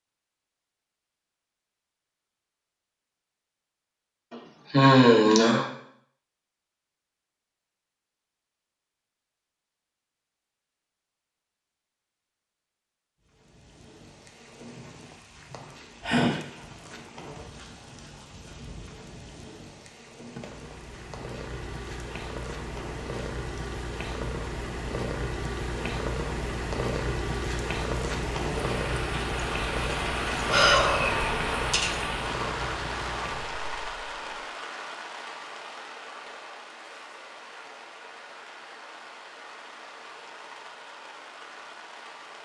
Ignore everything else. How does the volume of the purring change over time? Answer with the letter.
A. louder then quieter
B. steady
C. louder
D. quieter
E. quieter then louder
A.